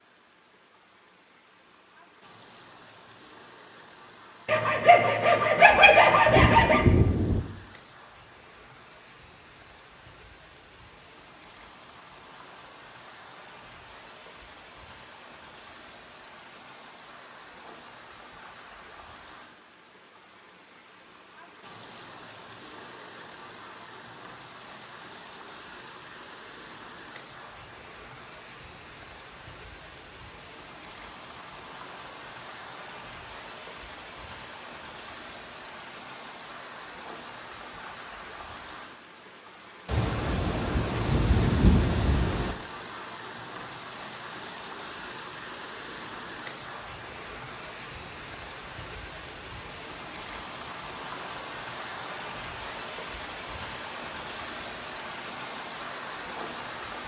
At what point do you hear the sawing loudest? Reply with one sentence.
The volume of the sawing peaks at 6 seconds.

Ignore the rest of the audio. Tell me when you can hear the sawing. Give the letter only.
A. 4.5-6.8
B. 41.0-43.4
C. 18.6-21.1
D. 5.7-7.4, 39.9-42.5
A.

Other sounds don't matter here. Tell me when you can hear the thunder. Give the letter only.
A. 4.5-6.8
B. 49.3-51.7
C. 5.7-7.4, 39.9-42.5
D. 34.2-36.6
C.